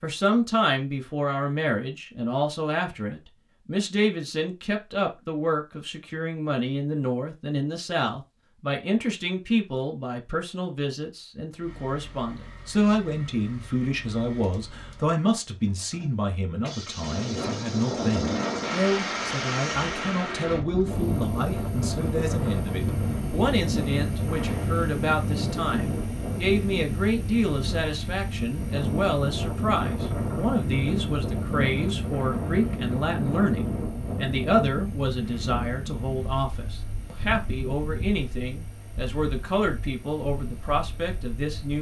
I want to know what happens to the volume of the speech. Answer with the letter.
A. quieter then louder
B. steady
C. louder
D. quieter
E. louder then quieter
B.